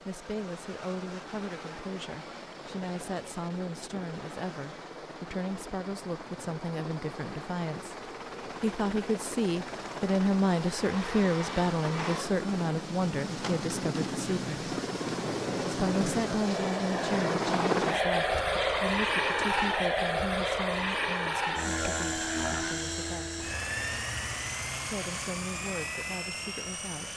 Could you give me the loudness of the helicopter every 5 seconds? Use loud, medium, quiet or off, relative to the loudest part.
quiet, quiet, medium, loud, loud, medium.